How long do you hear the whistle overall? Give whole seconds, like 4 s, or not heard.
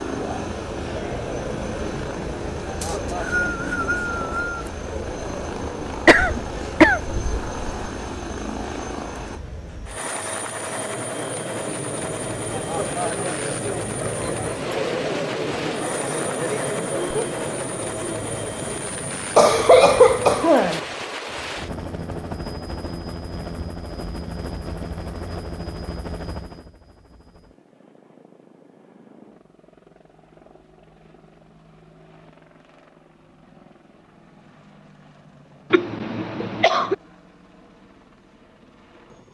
2 s.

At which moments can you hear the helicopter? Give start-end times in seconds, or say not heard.
0.0-39.2.